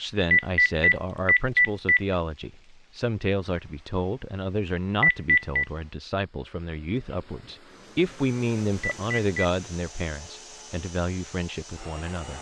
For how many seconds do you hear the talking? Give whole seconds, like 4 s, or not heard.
12 s.